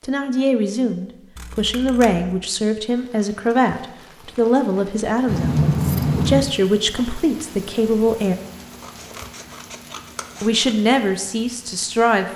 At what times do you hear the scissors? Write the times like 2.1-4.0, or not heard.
1.4-2.5, 5.2-6.6, 8.8-10.7.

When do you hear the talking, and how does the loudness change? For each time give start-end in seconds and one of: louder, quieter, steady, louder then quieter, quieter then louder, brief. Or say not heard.
0.1-8.3 steady
10.4-12.3 brief.